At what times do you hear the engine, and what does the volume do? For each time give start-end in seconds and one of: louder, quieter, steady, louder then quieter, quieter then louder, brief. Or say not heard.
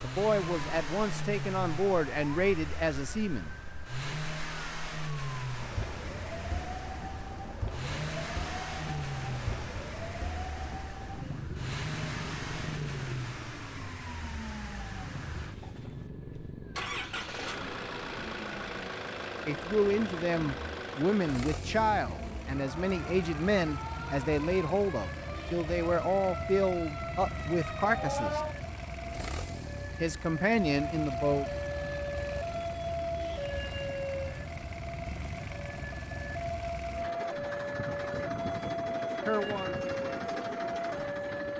0.0-41.5 steady.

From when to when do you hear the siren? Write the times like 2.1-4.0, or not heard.
0.0-41.5.